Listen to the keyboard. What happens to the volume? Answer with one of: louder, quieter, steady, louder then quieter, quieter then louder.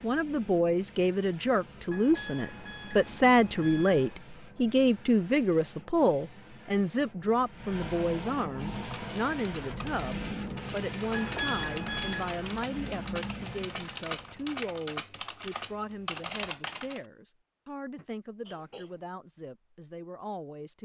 louder.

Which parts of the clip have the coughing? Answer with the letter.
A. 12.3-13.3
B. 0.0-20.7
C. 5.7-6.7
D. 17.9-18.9
D.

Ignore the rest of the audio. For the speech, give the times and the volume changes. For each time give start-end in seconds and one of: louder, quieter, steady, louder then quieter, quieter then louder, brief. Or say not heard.
0.0-20.7 quieter.